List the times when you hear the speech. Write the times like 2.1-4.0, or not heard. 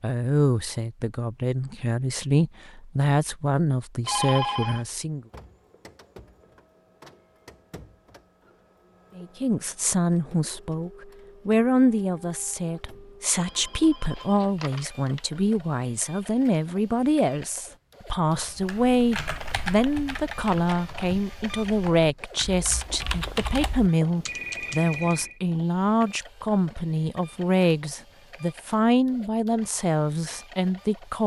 0.0-5.2, 9.2-31.2.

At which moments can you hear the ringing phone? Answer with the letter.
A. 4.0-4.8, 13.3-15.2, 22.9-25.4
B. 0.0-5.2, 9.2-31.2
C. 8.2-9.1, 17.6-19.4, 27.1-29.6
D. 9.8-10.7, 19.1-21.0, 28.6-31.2
A.